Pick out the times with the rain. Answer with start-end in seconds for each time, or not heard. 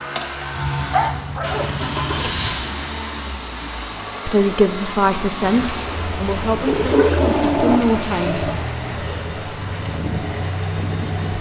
5.3-11.3.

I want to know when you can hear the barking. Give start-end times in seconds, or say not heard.
0.6-2.5, 6.7-8.6.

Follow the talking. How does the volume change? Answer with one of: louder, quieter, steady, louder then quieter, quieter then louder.
quieter then louder.